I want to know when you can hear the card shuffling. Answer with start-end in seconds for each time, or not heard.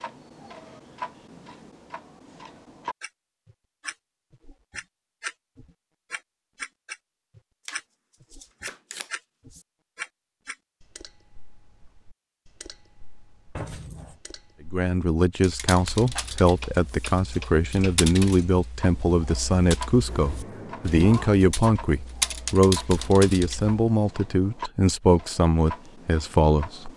7.7-9.6, 13.6-14.2.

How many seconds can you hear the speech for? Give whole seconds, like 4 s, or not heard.
12 s.